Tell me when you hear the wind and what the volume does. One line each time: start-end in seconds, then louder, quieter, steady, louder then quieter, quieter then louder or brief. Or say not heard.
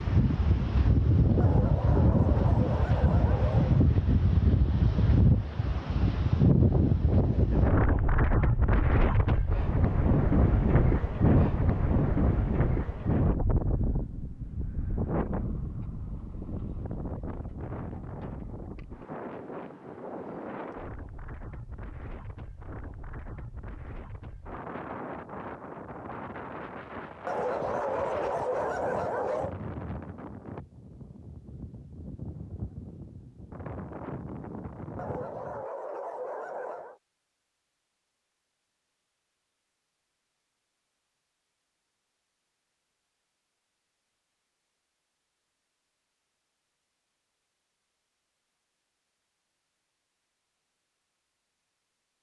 0.0-35.6 quieter.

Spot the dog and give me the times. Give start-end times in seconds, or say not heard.
1.4-3.9, 27.2-29.6, 35.0-37.0.